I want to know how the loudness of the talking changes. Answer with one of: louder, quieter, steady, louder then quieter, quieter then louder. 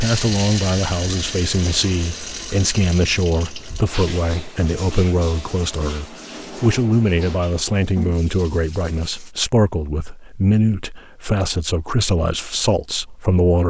steady.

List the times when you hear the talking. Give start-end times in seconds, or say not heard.
0.0-13.6.